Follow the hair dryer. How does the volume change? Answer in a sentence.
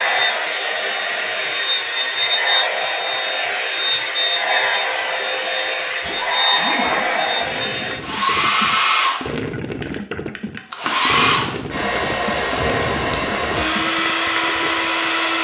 The loudness of the hair dryer stays about the same.